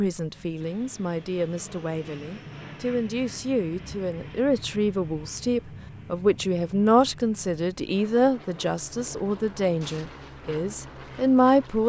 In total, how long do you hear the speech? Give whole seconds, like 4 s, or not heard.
12 s.